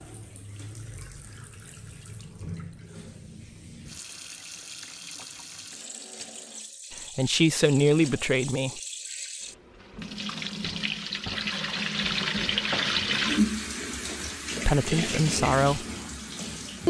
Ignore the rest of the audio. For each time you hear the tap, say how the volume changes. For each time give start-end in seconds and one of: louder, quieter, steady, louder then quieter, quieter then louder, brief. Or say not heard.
0.0-16.8 louder.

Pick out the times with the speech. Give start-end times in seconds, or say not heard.
6.9-8.8, 14.7-15.8.